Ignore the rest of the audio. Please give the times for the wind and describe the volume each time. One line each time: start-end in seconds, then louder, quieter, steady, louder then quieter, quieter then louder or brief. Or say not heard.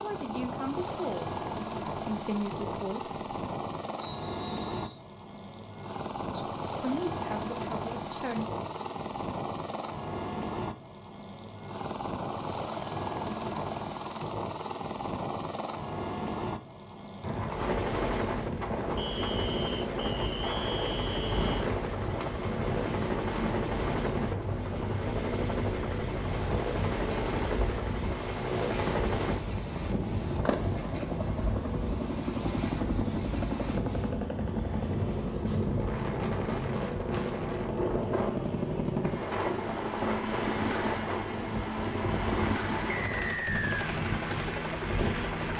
17.2-45.4 steady.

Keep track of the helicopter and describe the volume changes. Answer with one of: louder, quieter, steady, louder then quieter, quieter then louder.
steady.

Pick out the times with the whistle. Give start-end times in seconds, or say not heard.
4.0-5.0, 18.9-21.5, 42.9-43.9.